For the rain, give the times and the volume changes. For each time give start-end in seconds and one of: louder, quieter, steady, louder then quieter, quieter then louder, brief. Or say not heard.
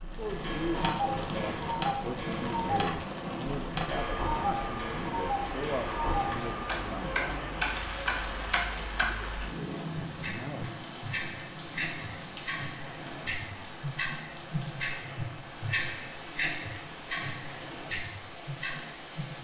0.0-19.4 quieter.